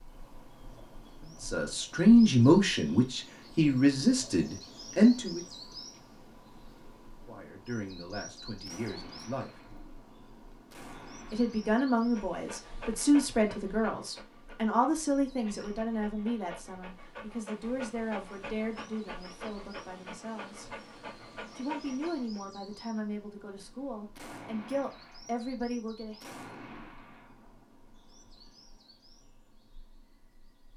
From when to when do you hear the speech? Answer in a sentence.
You can hear the speech from 1.4 to 5.4 s, from 7.2 to 9.5 s, from 11.3 to 20.8 s and from 21.6 to 26.4 s.